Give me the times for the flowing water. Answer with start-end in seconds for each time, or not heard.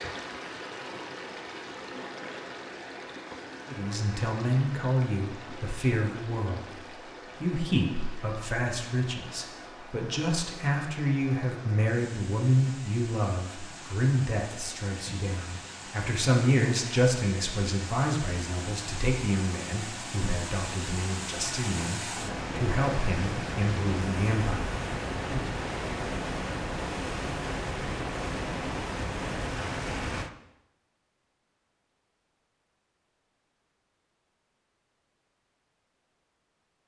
0.0-30.3.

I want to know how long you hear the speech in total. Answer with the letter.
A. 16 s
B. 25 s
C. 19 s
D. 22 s
D.